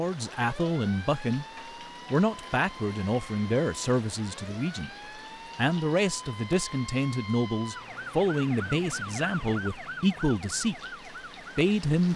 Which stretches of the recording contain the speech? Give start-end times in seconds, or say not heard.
0.0-1.4, 2.1-4.9, 5.5-10.8, 11.6-12.1.